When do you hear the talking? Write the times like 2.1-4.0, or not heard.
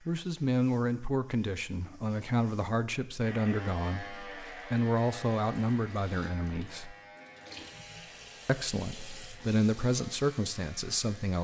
0.1-7.0, 8.4-11.3.